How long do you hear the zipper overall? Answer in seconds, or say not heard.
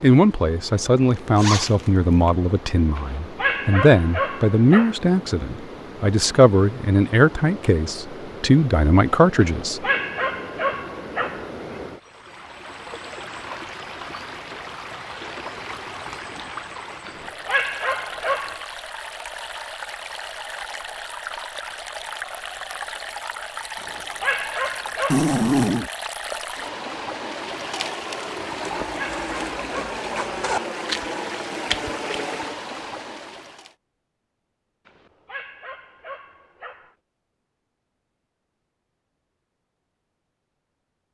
4 s.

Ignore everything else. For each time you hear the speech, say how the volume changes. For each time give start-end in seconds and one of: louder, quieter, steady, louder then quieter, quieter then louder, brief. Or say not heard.
0.0-9.8 steady.